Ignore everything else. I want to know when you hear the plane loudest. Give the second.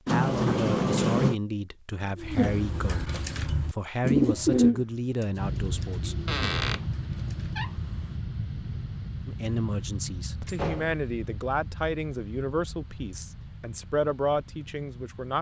6 s.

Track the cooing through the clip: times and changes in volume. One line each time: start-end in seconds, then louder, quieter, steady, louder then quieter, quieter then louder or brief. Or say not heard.
2.1-7.7 louder then quieter.